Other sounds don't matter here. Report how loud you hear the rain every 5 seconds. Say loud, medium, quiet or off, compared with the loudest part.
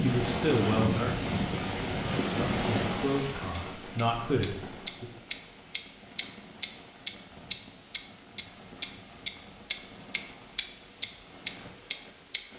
loud, quiet, quiet.